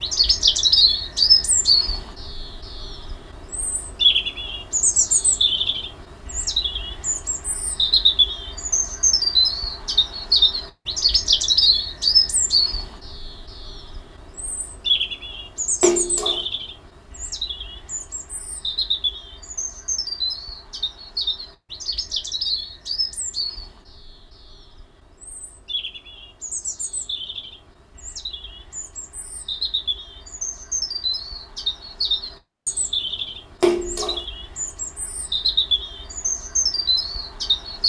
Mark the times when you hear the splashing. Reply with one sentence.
The splashing can be heard from 15.8 to 16.4 s and from 33.6 to 34.2 s.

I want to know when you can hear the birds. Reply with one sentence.
You can hear the birds from 0.0 to 37.8 s.